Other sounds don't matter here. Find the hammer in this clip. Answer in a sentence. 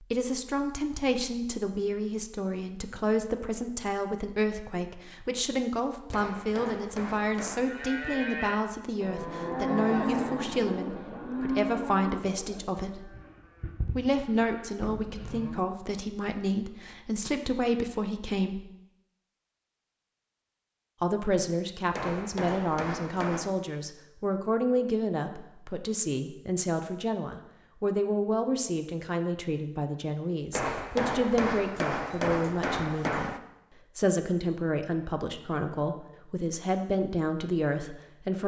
You can hear the hammer from 6.1 to 7.7 s, from 21.9 to 23.6 s and from 30.5 to 33.4 s.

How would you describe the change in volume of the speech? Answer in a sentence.
The volume of the speech stays about the same.